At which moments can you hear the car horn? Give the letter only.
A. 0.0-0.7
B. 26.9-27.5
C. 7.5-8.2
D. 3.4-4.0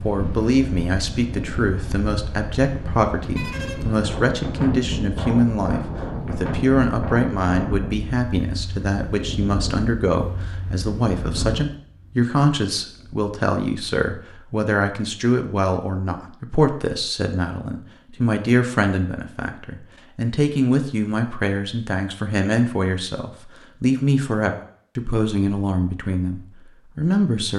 D.